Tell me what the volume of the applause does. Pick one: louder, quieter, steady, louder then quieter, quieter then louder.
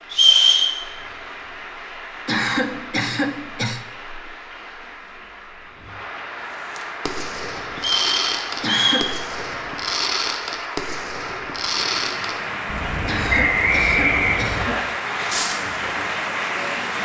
louder.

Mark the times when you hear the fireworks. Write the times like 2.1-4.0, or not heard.
6.7-15.7.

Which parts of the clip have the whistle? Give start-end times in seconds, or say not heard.
0.1-0.7, 7.8-9.1, 13.2-14.8.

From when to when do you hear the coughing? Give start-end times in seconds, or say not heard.
2.2-3.9, 8.6-9.2, 13.1-14.9.